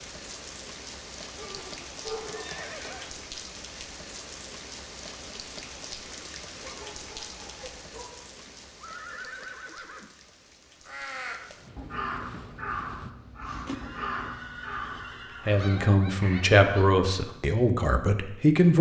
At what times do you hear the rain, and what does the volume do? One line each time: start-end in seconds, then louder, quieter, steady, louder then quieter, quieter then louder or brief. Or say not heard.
0.0-13.2 quieter.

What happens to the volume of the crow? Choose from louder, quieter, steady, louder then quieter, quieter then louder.
quieter.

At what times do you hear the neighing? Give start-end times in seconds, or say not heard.
1.4-3.1, 8.4-10.1, 13.7-15.7.